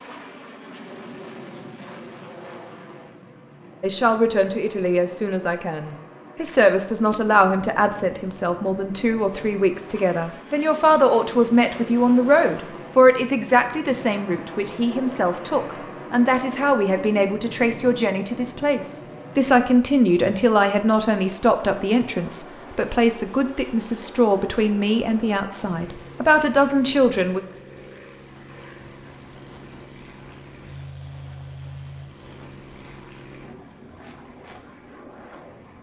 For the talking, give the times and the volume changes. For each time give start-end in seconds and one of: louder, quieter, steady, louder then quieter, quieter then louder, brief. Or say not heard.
3.8-27.4 steady.